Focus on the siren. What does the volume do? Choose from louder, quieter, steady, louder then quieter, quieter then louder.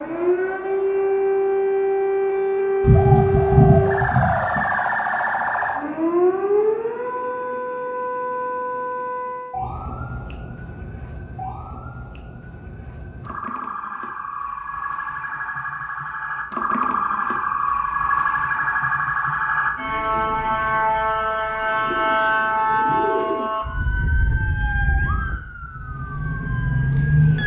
quieter then louder.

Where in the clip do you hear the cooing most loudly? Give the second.
4 s.